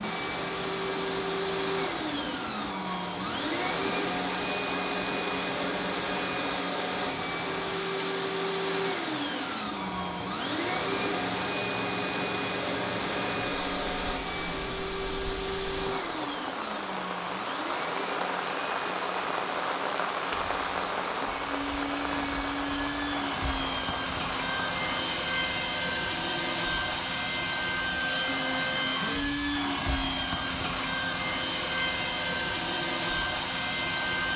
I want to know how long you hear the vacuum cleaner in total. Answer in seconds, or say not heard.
34 s.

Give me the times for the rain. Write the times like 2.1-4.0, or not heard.
0.0-25.2.